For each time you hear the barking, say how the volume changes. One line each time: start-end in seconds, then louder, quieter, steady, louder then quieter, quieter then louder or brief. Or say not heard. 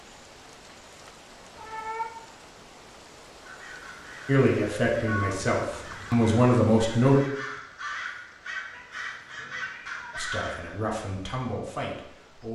not heard.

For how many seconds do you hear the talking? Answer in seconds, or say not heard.
5 s.